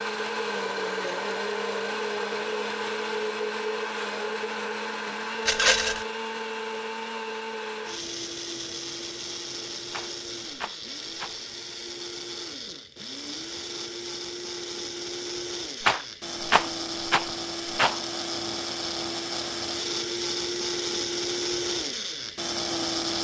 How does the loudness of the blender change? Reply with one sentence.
The loudness of the blender goes down, then up.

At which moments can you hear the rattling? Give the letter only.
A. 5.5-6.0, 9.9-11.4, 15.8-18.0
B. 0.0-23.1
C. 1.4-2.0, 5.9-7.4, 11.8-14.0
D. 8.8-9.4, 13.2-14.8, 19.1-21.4
A.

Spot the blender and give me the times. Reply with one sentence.
You can hear the blender from 0.0 to 23.1 s.